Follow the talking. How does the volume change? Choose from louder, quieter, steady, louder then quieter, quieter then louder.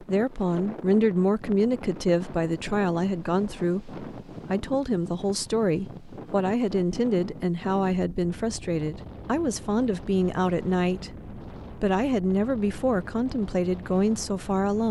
steady.